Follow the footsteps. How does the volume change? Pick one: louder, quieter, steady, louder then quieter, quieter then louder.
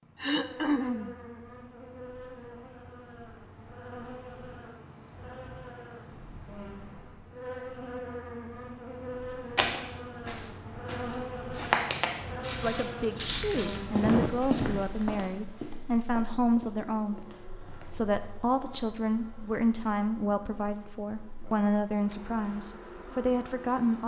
louder then quieter.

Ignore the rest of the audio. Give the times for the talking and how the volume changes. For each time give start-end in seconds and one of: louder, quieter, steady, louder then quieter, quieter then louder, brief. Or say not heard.
12.6-24.0 steady.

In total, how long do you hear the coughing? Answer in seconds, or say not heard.
2 s.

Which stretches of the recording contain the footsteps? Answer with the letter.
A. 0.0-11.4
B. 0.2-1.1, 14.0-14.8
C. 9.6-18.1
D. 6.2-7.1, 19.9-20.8
C.